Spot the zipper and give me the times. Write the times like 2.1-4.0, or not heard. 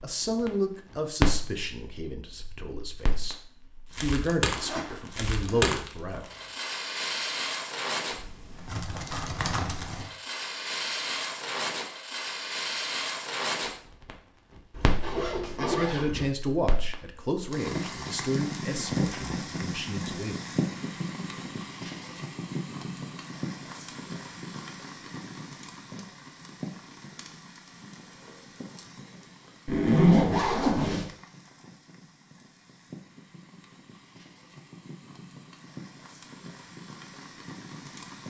4.5-6.5, 14.7-16.2, 29.6-31.1.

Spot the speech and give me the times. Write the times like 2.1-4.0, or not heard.
0.0-3.4, 4.0-6.2, 15.7-20.4.